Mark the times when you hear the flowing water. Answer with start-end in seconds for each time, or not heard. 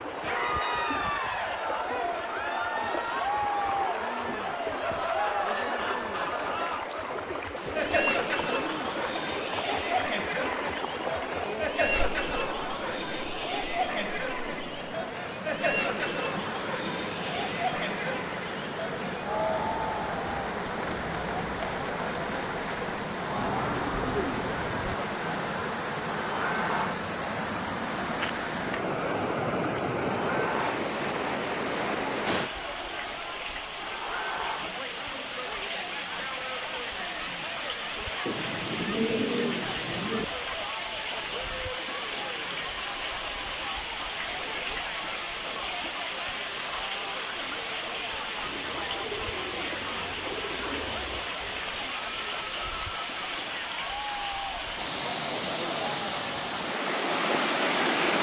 0.0-58.1.